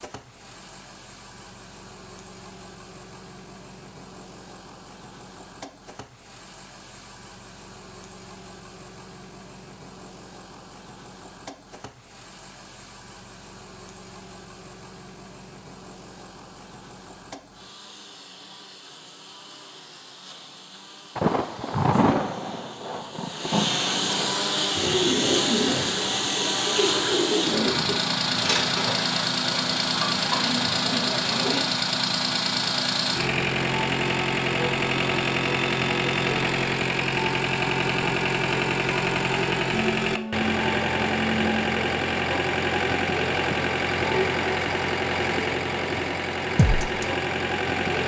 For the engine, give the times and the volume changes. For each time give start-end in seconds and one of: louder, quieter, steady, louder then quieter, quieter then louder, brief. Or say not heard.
0.0-48.0 louder.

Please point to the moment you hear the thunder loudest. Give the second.
22 s.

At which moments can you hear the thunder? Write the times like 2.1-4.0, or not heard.
21.1-24.4.